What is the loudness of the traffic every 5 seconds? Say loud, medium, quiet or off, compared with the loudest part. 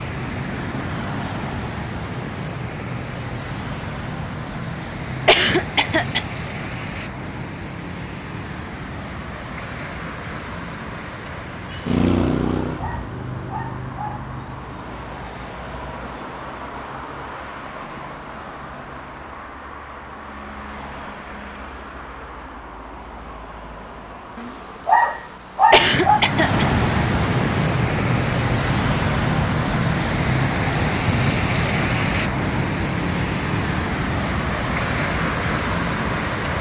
medium, medium, medium, quiet, quiet, loud, loud, loud.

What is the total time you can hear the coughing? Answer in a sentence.
You can hear the coughing for 2 seconds altogether.